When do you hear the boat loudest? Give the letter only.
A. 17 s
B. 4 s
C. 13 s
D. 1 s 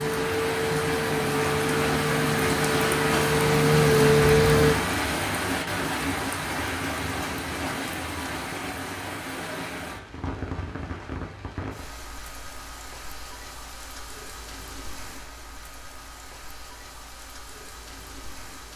B.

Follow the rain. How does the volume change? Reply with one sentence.
The volume of the rain goes down.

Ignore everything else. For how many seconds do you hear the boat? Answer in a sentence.
The boat can be heard for 5 seconds in total.